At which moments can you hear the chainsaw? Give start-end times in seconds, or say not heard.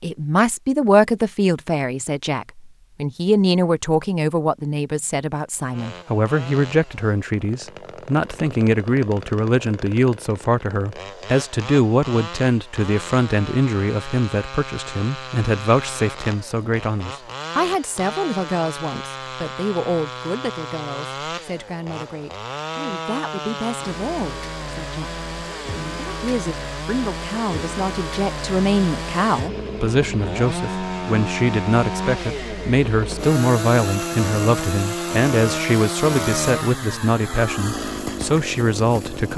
5.7-39.3.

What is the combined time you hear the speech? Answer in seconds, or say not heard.
39 s.